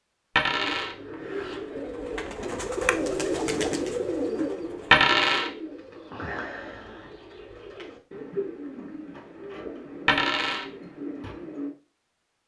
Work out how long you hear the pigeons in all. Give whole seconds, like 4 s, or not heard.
11 s.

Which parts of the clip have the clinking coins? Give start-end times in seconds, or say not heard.
0.3-0.9, 4.9-5.5, 10.1-10.7.